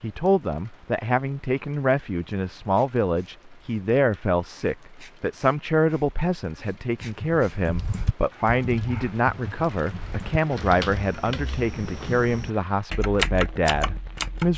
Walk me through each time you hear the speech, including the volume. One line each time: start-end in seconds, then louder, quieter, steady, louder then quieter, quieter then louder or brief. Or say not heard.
0.0-14.5 steady.